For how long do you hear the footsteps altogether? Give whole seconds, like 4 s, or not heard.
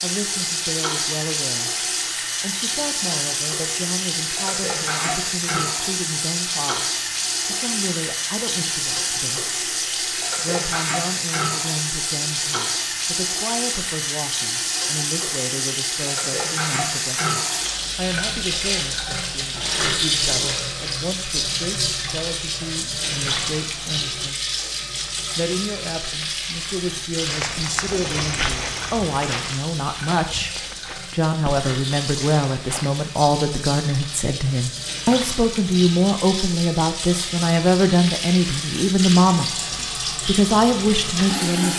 6 s.